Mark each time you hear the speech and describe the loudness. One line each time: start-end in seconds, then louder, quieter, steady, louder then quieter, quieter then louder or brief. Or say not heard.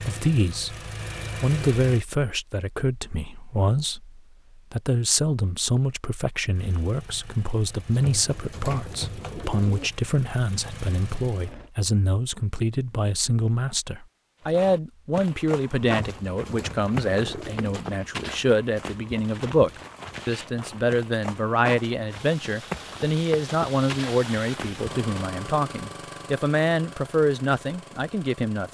0.0-0.8 brief
1.4-28.6 steady.